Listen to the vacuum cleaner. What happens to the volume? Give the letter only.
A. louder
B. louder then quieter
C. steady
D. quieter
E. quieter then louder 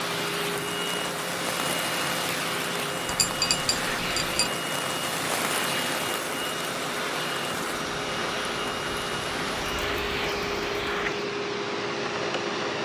C.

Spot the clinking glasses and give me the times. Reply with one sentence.
You can hear the clinking glasses from 3.0 to 4.5 s.